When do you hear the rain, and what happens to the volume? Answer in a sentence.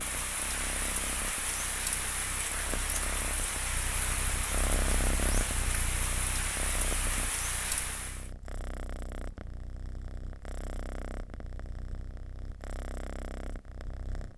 The rain can be heard from 0.0 to 8.3 s, at a steady volume.